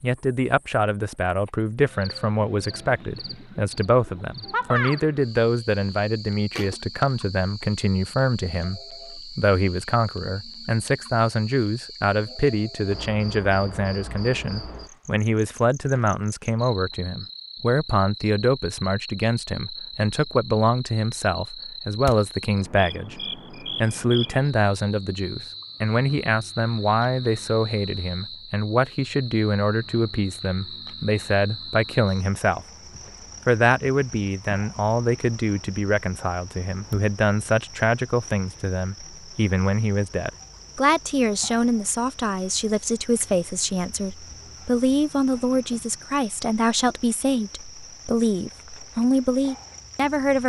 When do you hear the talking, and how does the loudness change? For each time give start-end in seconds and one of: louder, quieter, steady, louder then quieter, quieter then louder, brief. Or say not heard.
0.0-32.6 steady
33.5-50.4 steady.